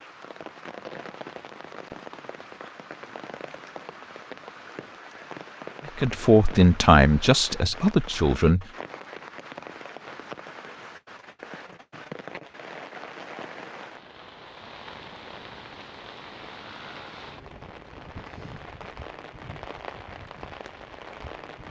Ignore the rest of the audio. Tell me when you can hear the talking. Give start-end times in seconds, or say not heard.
6.0-8.7.